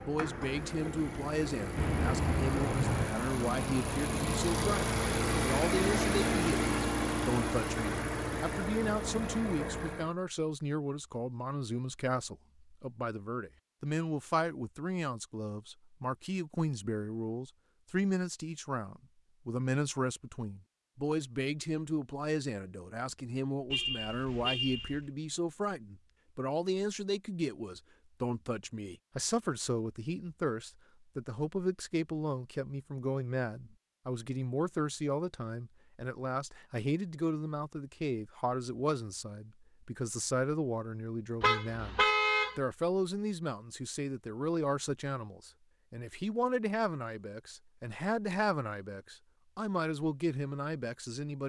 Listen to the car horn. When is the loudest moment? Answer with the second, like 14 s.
42 s.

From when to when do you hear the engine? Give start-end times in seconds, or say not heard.
0.0-10.2.